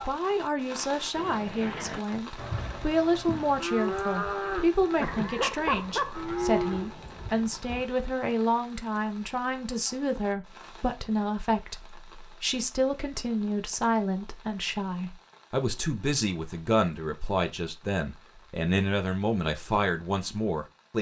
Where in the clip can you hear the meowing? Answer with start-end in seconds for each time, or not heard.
5.0-6.2.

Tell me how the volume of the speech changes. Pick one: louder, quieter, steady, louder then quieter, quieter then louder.
steady.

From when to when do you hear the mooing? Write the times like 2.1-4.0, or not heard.
1.1-7.8.